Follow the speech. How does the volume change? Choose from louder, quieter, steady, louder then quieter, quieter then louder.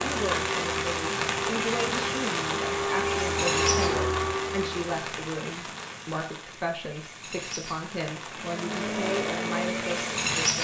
steady.